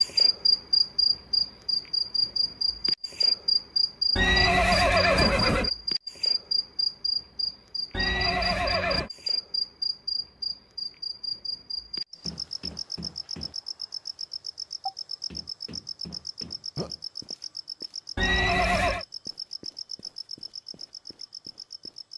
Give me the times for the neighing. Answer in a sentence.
The neighing can be heard from 4.2 to 5.7 s, from 7.9 to 9.1 s and from 18.1 to 19.1 s.